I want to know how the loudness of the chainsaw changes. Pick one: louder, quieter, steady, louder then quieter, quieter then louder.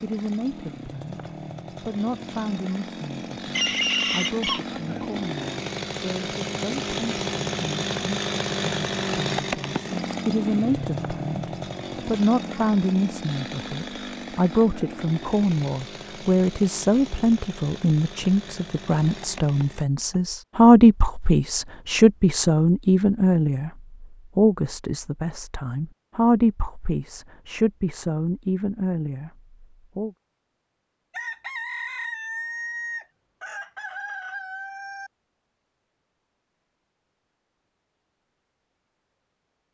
louder then quieter.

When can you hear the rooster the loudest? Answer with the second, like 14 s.
4 s.